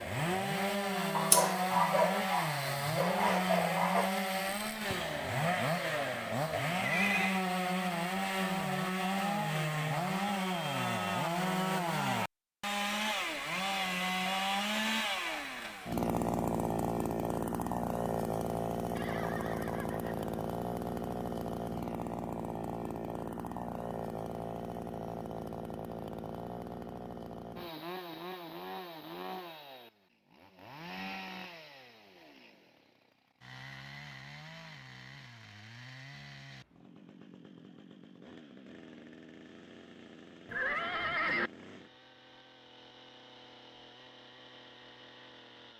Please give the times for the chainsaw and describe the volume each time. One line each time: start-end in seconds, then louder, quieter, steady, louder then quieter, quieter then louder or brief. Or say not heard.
0.0-45.7 quieter.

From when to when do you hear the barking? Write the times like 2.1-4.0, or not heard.
1.1-4.1.